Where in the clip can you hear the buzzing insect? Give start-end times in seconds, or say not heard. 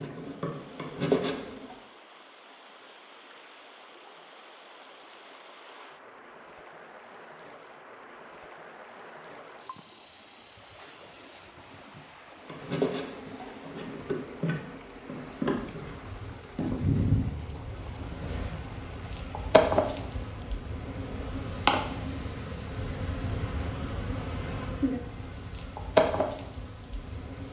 0.0-1.8, 12.4-27.4.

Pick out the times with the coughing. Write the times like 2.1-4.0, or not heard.
not heard.